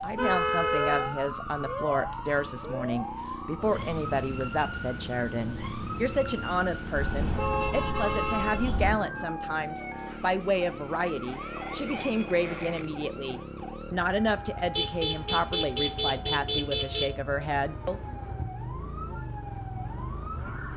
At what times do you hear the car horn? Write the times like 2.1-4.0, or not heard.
0.1-1.1, 7.0-8.9, 14.8-17.1.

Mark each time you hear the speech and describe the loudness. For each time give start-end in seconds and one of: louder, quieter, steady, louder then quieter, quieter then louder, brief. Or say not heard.
0.0-18.0 steady.